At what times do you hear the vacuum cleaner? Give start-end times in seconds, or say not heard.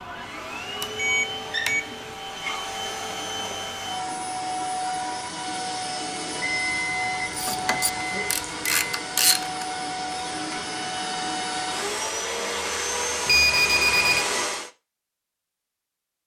0.0-14.7.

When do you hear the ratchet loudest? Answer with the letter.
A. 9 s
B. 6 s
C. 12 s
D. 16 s
A.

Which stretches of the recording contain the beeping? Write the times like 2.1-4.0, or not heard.
0.8-1.8, 6.4-9.1, 13.2-14.2.